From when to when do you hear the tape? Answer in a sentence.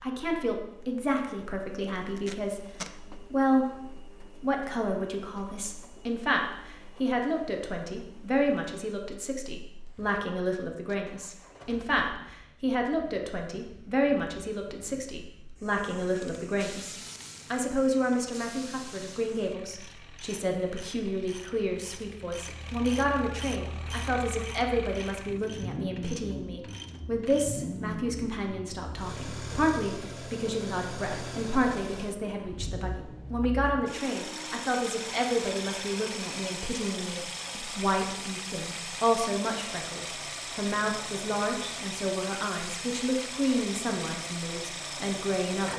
You can hear the tape from 1.9 to 3.0 s.